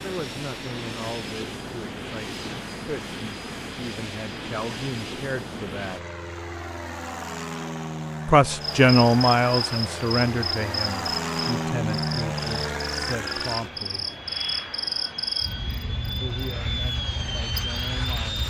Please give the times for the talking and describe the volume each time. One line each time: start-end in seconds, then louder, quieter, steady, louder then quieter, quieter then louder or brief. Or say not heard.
0.0-6.0 quieter then louder
8.2-14.1 quieter
16.2-18.4 brief.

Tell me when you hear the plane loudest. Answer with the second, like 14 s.
12 s.